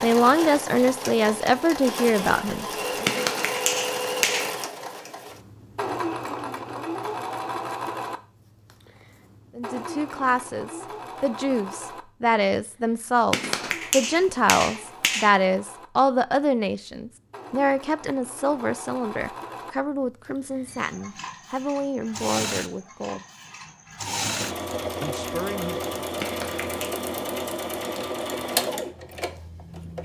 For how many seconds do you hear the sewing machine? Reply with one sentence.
The sewing machine can be heard for 30 seconds in total.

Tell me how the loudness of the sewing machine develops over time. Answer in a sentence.
The volume of the sewing machine goes down, then up.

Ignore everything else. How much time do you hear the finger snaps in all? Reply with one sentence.
You can hear the finger snaps for 4 seconds altogether.